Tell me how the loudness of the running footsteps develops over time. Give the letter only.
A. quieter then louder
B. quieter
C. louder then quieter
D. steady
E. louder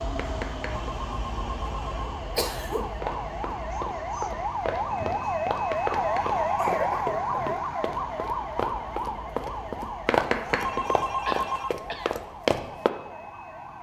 E.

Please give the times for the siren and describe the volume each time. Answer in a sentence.
The siren can be heard from 0.1 to 13.7 s, getting louder then quieter.